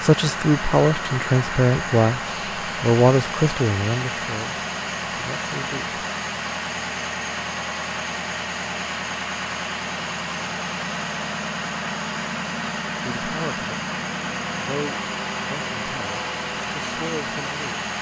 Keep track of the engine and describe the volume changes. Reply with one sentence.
The volume of the engine stays about the same.